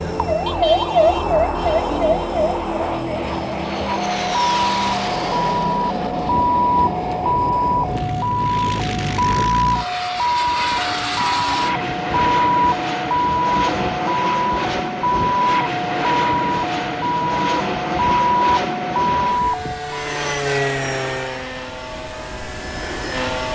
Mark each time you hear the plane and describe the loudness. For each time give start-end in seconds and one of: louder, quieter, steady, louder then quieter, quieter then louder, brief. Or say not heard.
0.0-23.4 steady.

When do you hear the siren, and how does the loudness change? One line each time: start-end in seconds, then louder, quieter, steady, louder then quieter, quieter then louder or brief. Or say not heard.
0.0-20.0 steady.